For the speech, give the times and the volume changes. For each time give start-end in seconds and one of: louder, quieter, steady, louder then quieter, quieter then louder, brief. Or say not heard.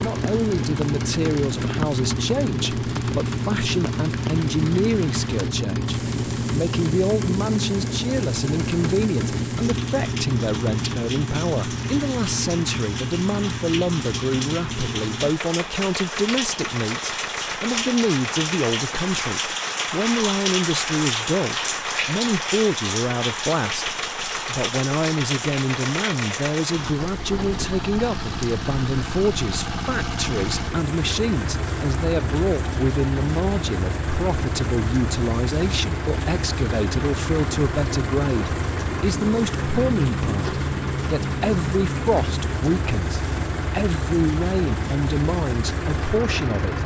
0.0-46.8 steady.